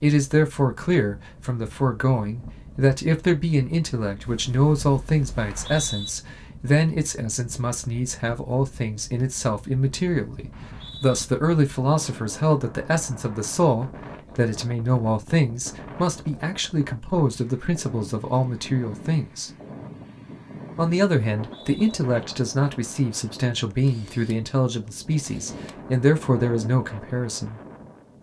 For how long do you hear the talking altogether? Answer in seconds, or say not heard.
26 s.